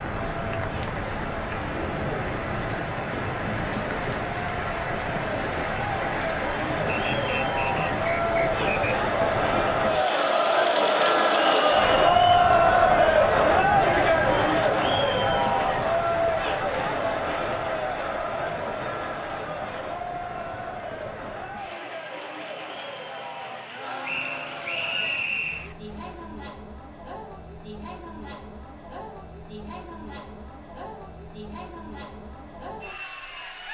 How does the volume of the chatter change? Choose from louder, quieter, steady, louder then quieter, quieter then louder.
louder then quieter.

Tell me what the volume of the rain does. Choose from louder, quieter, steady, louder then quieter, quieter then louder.
quieter.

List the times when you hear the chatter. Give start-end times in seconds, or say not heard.
0.2-33.6.